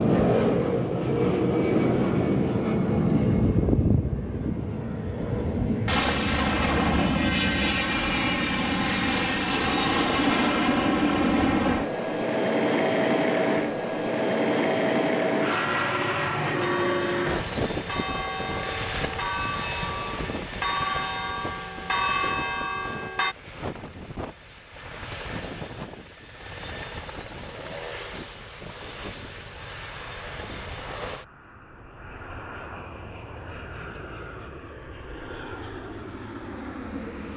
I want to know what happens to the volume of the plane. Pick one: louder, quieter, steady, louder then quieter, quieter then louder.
quieter.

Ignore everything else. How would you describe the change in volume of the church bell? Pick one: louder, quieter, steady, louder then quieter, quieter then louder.
louder.